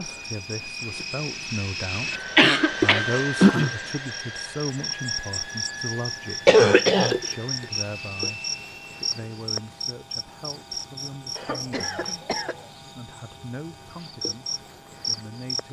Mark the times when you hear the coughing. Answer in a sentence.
The coughing can be heard from 2.4 to 3.5 s, from 6.5 to 7.2 s and from 11.3 to 12.7 s.